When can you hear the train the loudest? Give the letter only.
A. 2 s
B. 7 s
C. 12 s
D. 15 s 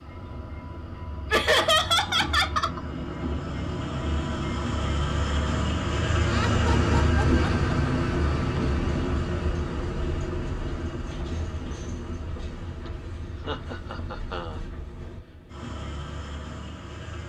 B.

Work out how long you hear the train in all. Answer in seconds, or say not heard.
17 s.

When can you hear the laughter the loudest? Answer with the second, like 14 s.
2 s.